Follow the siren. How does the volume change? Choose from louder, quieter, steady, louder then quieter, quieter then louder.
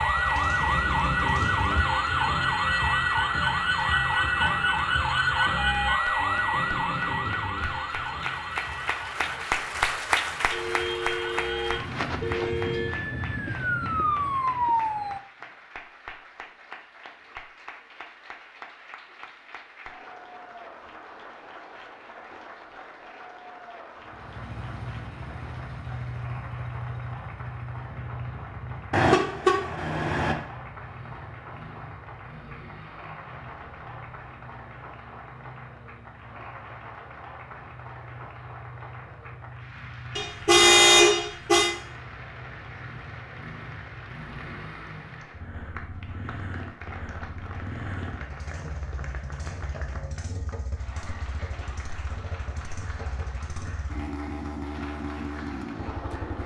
quieter then louder.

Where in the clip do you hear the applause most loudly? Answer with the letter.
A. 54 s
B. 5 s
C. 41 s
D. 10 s
D.